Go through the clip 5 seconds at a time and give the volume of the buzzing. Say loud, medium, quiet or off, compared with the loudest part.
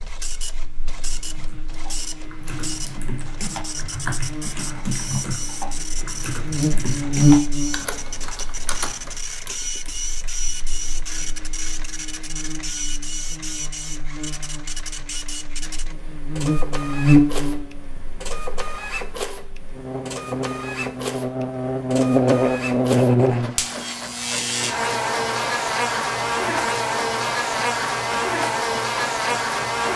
quiet, loud, quiet, loud, loud, loud.